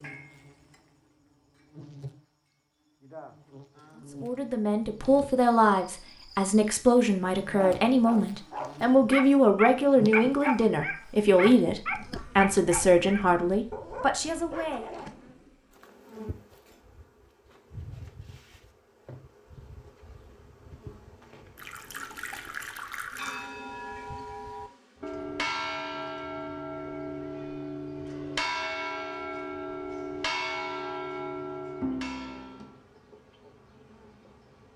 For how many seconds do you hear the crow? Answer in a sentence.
You can't hear the crow here.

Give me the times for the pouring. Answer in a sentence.
You can hear the pouring from 21.6 to 23.6 s.